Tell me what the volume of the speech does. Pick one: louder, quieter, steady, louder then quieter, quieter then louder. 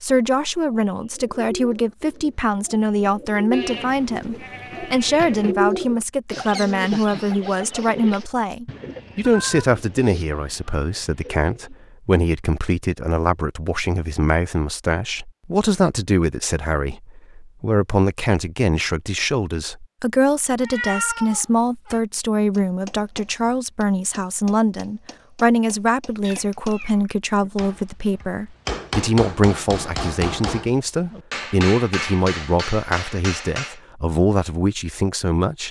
steady.